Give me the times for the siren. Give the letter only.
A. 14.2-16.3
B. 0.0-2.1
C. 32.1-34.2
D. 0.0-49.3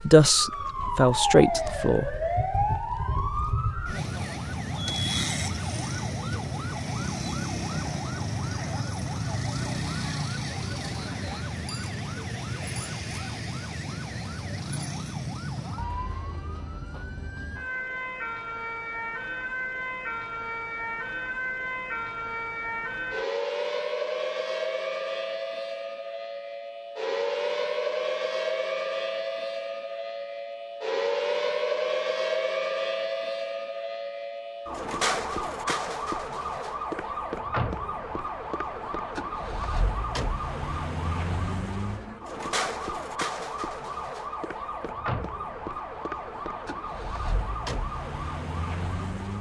D.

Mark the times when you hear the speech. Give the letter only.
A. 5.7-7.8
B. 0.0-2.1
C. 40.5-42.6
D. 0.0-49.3
B.